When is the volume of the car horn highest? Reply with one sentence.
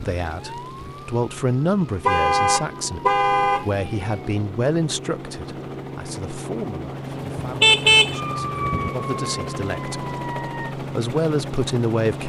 The volume of the car horn peaks at 8 seconds.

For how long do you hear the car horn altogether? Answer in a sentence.
You can hear the car horn for 3 seconds altogether.